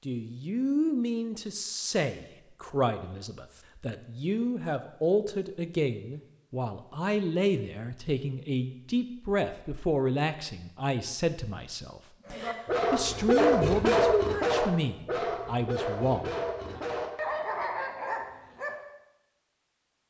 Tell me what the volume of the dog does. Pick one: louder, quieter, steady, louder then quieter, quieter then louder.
quieter.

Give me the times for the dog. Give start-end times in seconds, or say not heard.
12.2-18.8.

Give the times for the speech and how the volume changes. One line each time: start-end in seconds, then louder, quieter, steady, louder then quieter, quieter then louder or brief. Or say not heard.
0.1-16.8 steady.